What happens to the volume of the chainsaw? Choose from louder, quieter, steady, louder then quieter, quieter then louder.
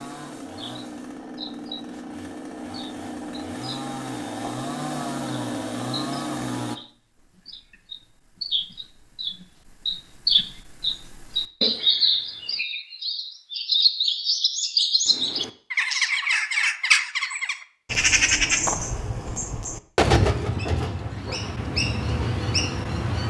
louder.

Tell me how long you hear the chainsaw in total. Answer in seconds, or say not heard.
7 s.